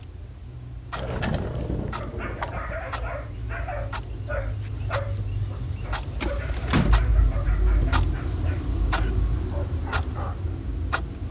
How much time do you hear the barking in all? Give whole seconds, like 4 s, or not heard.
9 s.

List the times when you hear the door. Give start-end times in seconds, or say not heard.
0.9-2.5, 6.2-7.0.